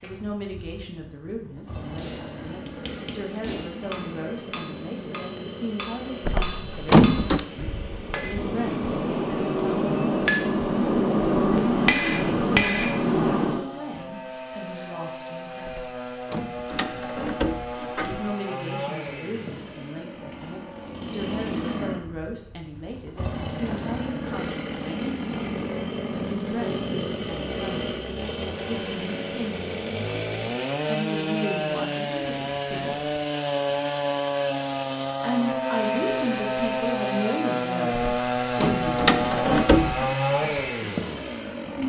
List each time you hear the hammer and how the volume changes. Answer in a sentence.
You can hear the hammer from 1.9 to 13.7 s, getting louder.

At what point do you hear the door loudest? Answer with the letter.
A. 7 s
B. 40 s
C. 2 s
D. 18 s
A.